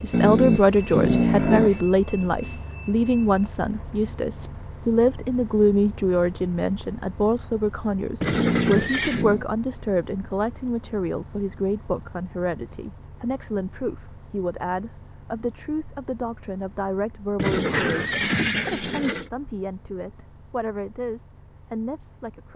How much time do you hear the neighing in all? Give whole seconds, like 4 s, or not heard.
3 s.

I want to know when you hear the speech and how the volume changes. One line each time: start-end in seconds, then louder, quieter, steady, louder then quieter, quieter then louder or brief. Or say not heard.
0.0-22.5 quieter.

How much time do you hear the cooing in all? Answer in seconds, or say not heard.
not heard.